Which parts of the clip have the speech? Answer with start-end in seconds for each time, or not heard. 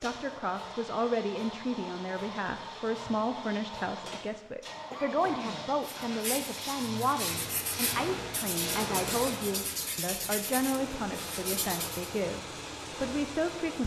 0.0-13.8.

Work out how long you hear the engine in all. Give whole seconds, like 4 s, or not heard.
14 s.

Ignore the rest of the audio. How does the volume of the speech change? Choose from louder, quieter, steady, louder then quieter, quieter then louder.
steady.